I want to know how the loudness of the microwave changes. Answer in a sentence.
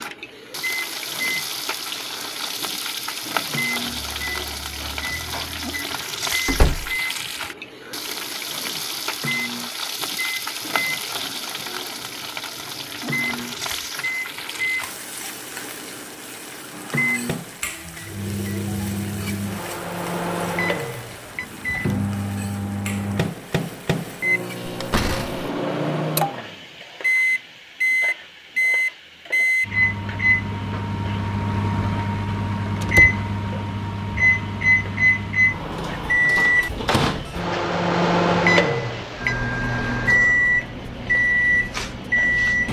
The loudness of the microwave goes up.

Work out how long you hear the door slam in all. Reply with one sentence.
The door slam can be heard for 2 seconds in total.